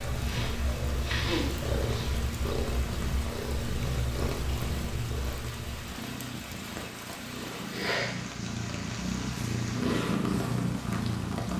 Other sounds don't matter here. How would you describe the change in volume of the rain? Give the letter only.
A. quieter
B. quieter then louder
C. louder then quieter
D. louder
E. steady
E.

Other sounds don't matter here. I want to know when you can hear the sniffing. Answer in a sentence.
The sniffing can be heard from 0.2 to 2.1 s and from 7.7 to 8.2 s.